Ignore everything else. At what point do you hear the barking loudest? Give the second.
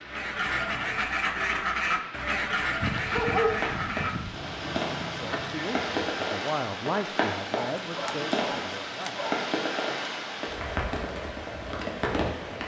3 s.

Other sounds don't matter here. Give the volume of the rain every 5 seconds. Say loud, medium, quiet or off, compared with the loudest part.
medium, loud, loud.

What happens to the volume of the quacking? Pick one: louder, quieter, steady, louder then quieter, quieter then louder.
quieter.